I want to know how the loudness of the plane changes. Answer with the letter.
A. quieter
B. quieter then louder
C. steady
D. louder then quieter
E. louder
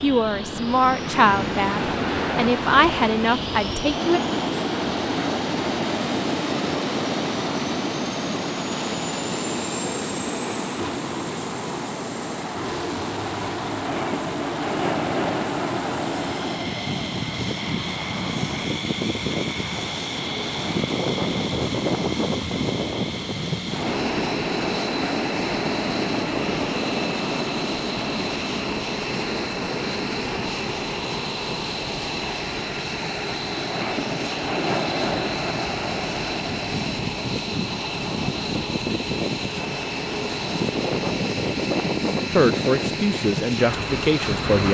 C.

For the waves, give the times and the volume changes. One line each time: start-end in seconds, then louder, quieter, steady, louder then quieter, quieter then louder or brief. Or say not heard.
0.0-44.6 steady.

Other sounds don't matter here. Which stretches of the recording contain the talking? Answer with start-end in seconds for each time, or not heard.
0.0-4.2, 42.3-44.6.